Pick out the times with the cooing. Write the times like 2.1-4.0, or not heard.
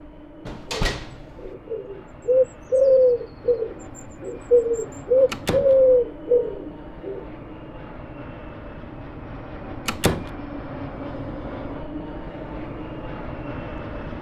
0.7-7.2.